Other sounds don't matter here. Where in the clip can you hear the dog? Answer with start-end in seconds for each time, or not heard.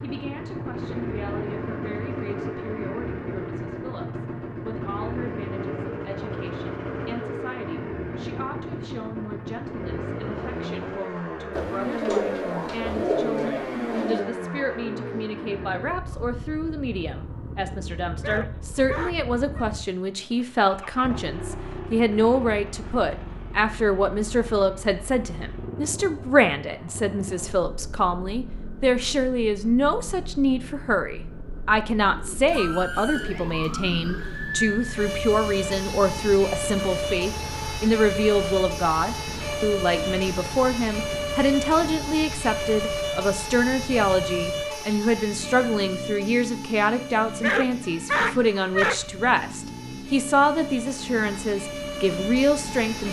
18.1-19.6, 47.2-49.0.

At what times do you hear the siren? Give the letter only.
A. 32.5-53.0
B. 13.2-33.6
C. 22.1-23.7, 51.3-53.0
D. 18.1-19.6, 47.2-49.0
A.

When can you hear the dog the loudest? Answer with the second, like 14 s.
48 s.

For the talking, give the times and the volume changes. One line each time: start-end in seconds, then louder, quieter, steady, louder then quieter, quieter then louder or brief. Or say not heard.
0.0-53.0 louder.